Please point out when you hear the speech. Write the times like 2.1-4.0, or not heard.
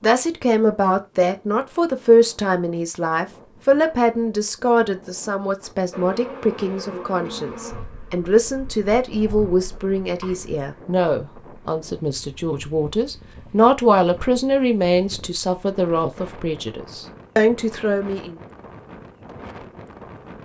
0.0-18.4.